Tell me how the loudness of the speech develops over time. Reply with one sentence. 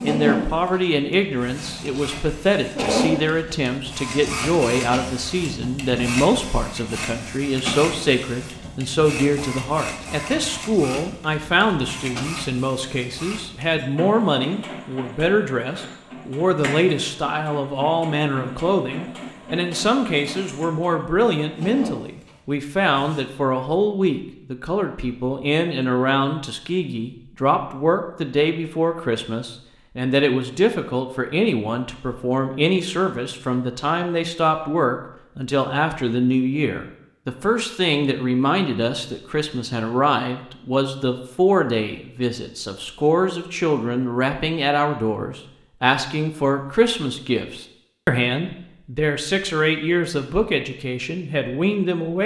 The volume of the speech stays about the same.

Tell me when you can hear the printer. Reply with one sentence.
The printer can be heard from 0.0 to 23.2 s.